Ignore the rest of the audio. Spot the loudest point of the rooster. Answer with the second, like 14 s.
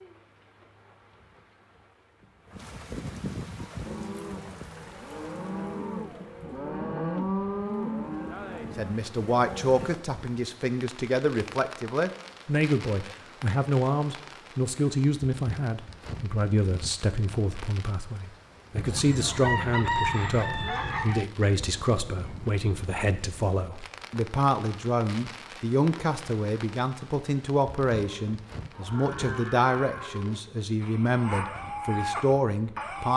20 s.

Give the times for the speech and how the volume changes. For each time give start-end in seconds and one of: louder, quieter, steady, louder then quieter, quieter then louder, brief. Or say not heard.
8.8-33.1 steady.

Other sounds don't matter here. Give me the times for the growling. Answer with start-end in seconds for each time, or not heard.
not heard.